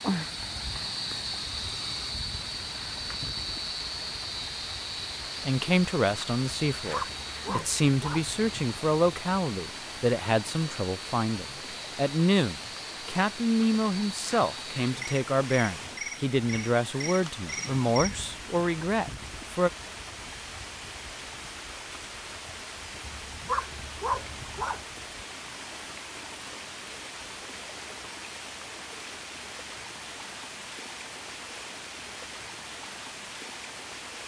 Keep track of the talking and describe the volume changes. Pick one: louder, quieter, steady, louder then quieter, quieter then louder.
steady.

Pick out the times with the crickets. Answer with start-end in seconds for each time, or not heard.
0.0-18.6.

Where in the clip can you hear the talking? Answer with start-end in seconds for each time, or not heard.
5.5-19.7.